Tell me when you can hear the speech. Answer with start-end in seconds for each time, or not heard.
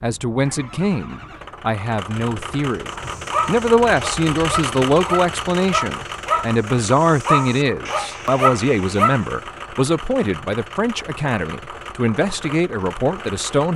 0.0-13.7.